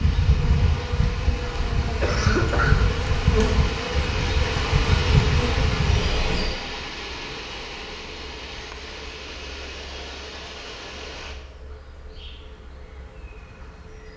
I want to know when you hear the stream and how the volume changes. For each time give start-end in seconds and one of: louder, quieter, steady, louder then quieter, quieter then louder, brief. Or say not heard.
0.0-11.3 louder then quieter.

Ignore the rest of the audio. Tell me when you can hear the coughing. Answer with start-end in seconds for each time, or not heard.
1.3-2.9.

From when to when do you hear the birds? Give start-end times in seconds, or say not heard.
not heard.